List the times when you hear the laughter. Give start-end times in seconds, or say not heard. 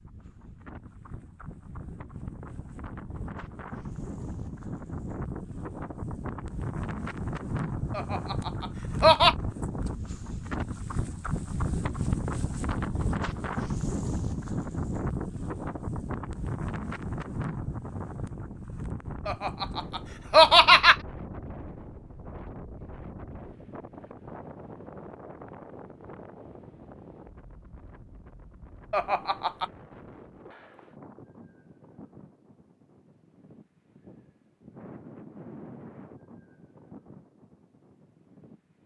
8.0-9.3, 19.2-20.9, 28.9-29.7.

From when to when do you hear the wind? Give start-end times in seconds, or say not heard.
0.0-38.8.